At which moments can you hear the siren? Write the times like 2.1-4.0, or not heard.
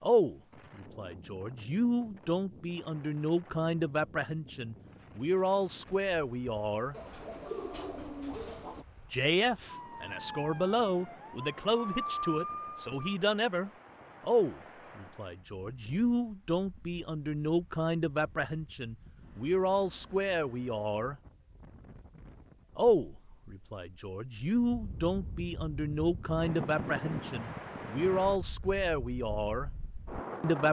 9.7-13.2.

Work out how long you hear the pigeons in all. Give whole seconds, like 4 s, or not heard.
2 s.